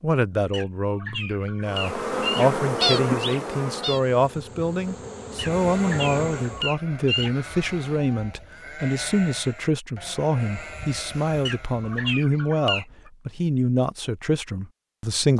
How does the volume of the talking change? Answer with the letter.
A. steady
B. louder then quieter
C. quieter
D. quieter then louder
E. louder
A.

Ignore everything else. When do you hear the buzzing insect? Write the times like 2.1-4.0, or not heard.
1.6-6.7.